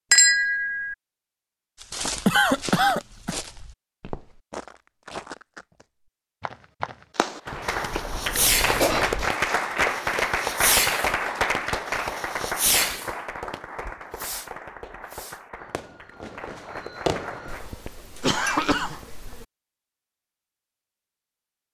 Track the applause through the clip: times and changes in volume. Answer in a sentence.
The applause can be heard from 7.5 to 17.8 s, getting quieter.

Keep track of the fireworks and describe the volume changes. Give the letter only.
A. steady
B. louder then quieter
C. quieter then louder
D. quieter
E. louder
C.